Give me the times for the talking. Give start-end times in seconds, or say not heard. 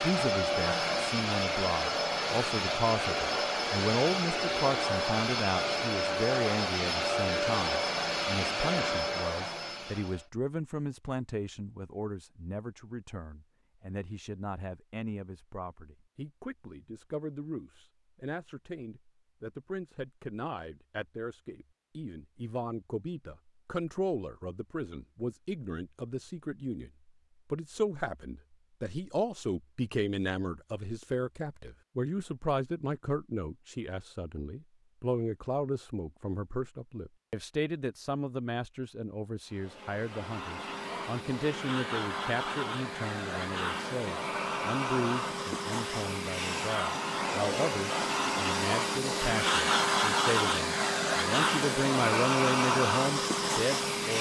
0.0-26.9, 27.5-54.1.